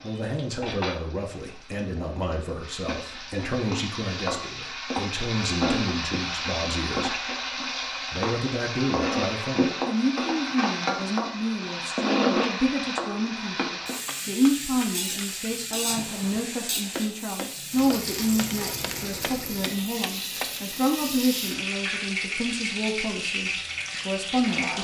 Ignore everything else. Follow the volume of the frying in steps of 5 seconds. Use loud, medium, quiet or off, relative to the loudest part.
medium, loud, loud, medium, loud.